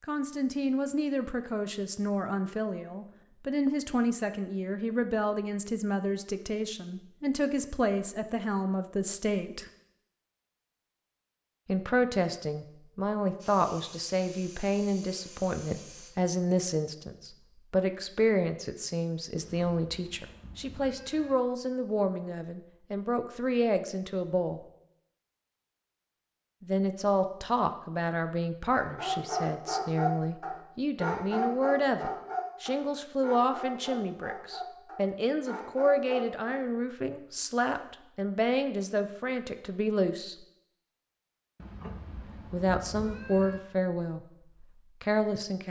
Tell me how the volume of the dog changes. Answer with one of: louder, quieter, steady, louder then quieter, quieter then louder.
quieter.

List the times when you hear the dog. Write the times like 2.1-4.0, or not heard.
28.6-36.6.